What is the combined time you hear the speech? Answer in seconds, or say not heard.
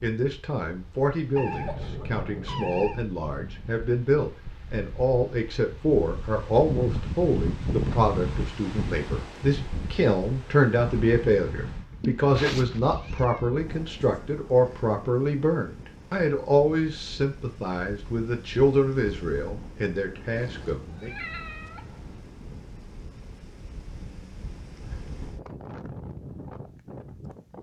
21 s.